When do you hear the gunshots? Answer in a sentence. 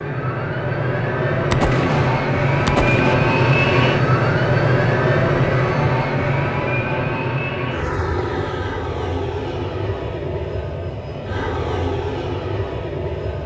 You can hear the gunshots from 1.5 to 3.1 s.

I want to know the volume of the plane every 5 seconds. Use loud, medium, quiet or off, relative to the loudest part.
loud, loud, medium.